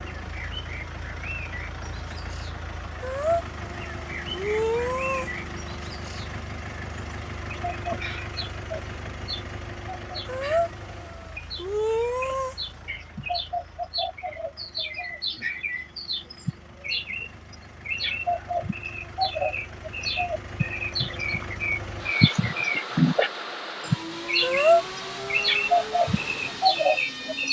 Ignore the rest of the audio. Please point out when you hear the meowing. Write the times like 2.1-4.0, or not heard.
3.0-5.3, 10.2-12.6, 24.4-25.5.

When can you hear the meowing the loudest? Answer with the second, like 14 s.
25 s.